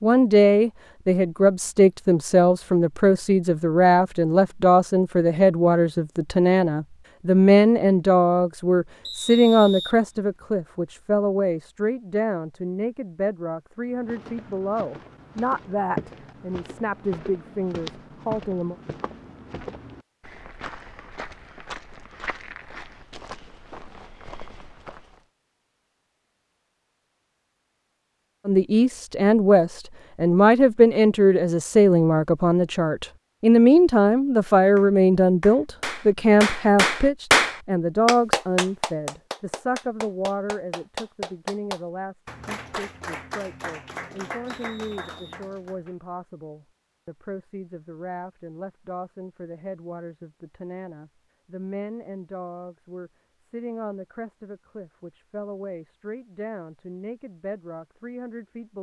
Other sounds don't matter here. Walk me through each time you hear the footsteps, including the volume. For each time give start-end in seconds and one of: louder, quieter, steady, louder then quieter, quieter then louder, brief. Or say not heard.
13.9-25.2 quieter.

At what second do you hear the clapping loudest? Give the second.
37 s.